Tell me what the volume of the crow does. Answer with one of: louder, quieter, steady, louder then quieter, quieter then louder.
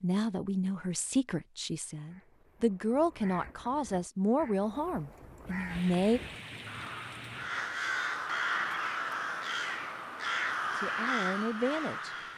louder.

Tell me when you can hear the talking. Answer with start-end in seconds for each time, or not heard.
0.0-6.2, 10.8-12.1.